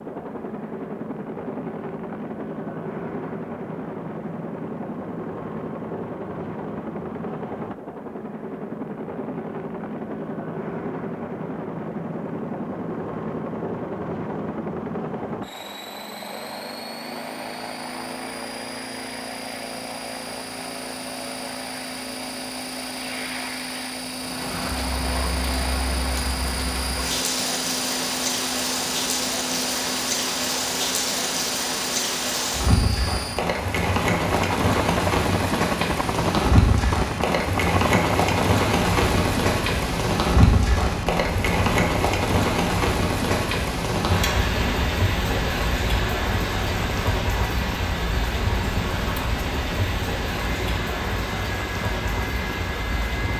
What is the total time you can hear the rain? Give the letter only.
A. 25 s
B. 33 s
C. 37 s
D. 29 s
D.